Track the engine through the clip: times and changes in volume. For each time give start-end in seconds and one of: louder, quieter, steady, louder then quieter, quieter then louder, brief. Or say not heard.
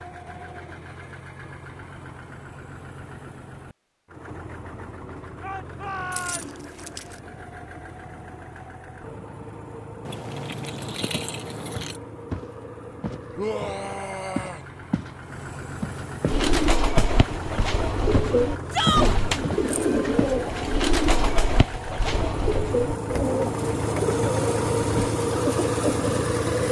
0.0-26.6 louder.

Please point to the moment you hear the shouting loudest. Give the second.
19 s.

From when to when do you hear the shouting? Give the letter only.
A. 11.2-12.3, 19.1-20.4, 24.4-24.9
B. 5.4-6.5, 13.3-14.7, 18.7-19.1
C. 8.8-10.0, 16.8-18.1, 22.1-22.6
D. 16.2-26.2
B.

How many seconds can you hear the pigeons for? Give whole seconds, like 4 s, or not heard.
10 s.